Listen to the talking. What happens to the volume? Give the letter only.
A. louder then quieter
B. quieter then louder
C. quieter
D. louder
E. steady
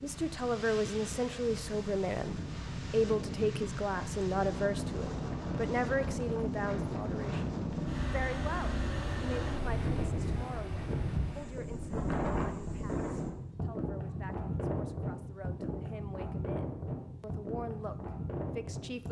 B.